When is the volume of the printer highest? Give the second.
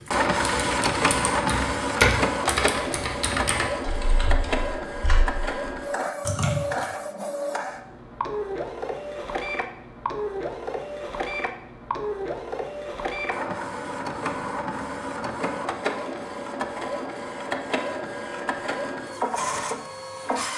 1 s.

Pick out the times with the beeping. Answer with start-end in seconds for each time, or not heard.
not heard.